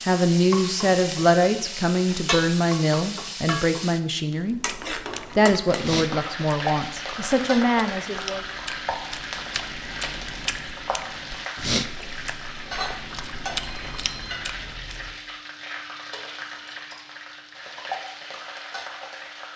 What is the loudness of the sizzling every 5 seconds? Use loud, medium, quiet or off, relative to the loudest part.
loud, loud, loud, medium.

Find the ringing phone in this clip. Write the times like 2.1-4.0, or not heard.
13.6-15.2.